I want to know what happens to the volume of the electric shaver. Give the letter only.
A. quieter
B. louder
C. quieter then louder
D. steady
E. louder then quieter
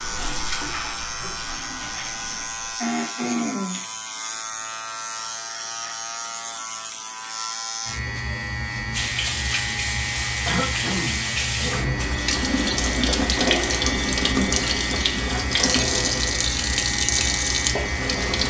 D.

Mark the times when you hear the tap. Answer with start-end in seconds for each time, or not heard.
0.0-2.8, 8.9-18.4.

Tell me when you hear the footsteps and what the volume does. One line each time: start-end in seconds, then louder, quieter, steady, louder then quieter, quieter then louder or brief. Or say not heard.
not heard.